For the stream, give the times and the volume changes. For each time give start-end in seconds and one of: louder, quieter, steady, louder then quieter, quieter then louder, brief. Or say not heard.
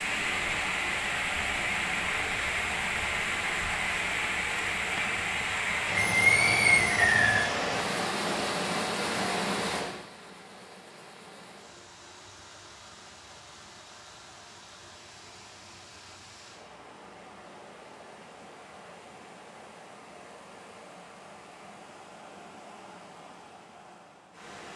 0.0-24.7 quieter.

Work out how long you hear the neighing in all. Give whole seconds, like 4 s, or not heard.
2 s.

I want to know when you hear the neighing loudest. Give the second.
6 s.